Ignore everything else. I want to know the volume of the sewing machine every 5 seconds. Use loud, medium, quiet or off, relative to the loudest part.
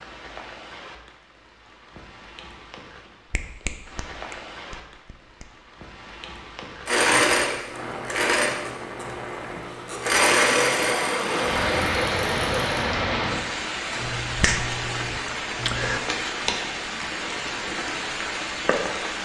off, loud, loud, off.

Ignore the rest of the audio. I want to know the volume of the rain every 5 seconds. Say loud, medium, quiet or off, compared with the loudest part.
quiet, quiet, loud, loud.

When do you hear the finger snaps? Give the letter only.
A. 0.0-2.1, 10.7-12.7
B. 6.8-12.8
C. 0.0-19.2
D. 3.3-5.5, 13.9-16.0
D.